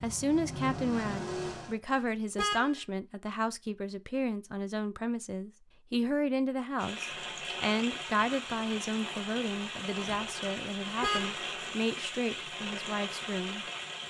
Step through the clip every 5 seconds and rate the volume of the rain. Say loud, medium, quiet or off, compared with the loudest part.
off, loud, loud.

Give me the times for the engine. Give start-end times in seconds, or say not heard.
0.0-1.8.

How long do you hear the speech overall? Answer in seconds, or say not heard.
14 s.